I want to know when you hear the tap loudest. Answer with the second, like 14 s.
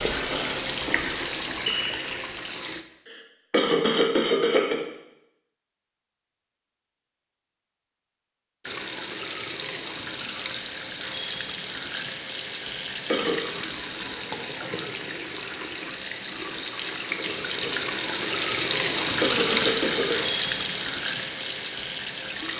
19 s.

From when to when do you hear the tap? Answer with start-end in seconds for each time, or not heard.
0.0-2.9, 8.6-22.5.